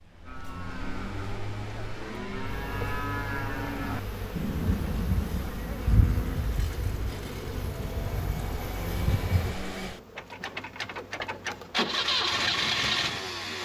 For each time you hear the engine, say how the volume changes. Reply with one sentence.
You can hear the engine from 0.0 to 13.5 s, getting louder.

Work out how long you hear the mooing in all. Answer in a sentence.
The mooing can be heard for 6 seconds in total.